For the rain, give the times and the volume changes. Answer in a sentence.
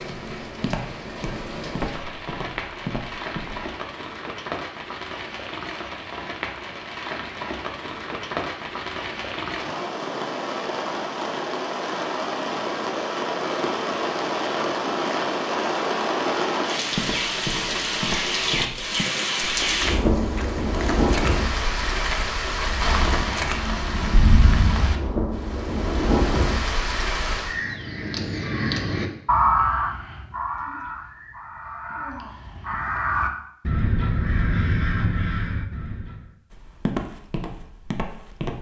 You can hear the rain from 0.0 to 27.6 s, getting louder.